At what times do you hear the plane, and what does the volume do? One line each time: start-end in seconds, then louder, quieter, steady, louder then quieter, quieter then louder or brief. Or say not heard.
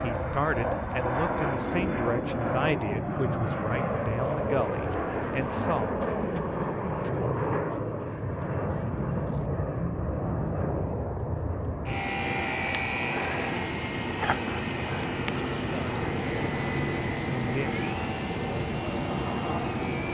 0.0-20.0 steady.